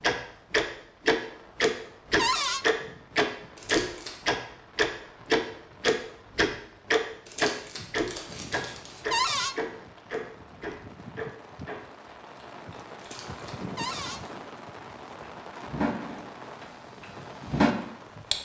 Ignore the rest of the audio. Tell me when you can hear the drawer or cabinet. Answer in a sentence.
The drawer or cabinet can be heard from 2.1 to 2.6 s, from 9.1 to 9.6 s and from 13.8 to 14.2 s.